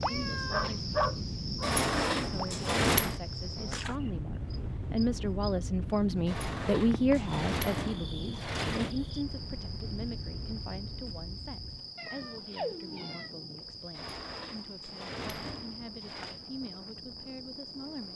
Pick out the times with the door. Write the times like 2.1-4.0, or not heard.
1.6-3.2, 6.2-8.9, 13.9-16.4.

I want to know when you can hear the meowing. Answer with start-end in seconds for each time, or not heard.
0.0-0.8, 11.9-13.3.